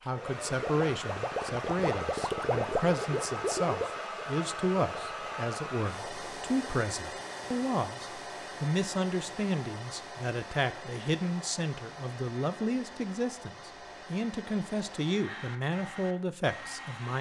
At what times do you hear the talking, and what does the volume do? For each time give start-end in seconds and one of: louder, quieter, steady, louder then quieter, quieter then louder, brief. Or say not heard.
0.1-17.1 steady.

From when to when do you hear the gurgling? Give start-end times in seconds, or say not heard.
0.2-6.8.